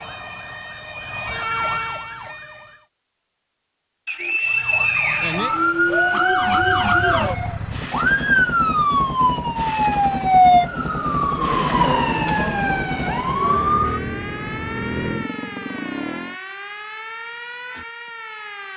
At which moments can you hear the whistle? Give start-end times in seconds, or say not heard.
4.0-5.5.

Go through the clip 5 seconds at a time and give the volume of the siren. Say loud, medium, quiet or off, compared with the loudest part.
medium, loud, loud, quiet.